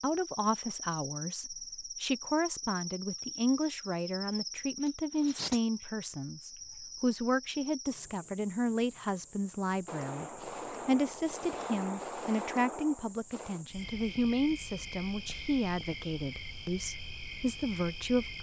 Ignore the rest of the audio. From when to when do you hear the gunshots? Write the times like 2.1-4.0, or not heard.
9.8-13.7.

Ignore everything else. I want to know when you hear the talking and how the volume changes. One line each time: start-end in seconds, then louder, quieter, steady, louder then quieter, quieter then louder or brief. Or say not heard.
0.0-18.3 steady.